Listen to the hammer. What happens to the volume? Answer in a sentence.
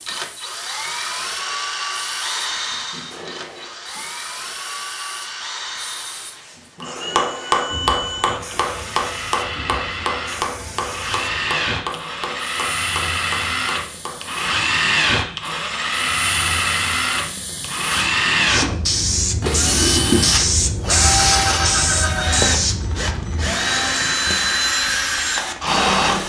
The volume of the hammer goes down.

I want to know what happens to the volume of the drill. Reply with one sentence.
The volume of the drill goes up.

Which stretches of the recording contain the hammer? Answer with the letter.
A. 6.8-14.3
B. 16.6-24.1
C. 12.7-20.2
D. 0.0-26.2
A.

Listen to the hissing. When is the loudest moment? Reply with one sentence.
The volume of the hissing peaks at 21 seconds.